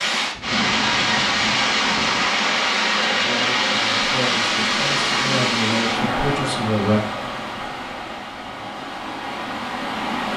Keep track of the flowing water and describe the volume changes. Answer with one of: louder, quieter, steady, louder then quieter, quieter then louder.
quieter.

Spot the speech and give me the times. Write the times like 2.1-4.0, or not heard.
3.1-7.0.